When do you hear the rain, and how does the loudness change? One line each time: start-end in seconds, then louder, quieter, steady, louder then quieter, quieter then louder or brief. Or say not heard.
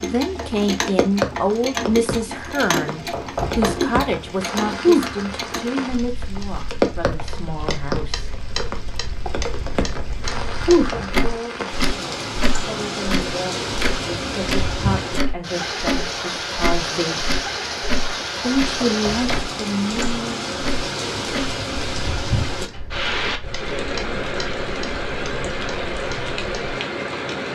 0.0-27.5 steady.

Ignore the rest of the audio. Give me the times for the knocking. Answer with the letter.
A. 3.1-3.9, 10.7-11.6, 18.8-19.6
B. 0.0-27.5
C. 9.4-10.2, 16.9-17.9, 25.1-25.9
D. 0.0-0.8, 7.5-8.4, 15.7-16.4
A.